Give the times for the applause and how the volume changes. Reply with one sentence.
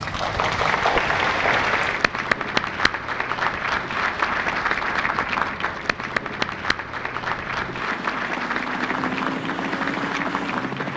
The applause can be heard from 0.0 to 10.9 s, getting quieter.